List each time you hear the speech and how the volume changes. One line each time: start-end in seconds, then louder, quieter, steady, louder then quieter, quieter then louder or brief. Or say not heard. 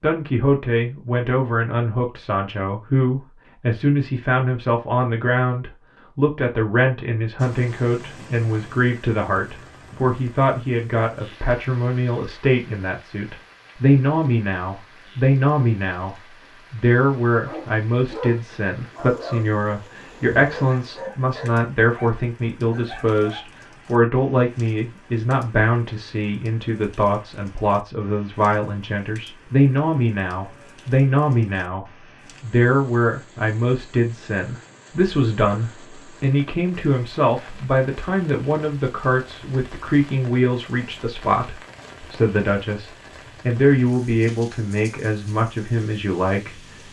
0.0-46.8 steady.